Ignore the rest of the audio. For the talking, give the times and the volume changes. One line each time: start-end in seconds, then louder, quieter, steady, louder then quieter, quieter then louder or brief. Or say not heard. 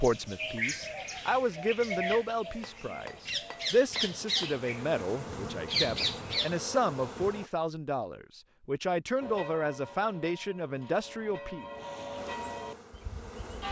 0.0-11.7 steady.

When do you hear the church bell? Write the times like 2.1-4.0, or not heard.
9.2-13.6.